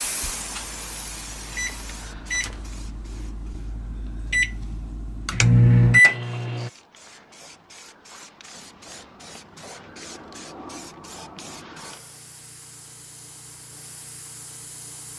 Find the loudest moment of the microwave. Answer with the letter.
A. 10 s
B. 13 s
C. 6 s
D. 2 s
C.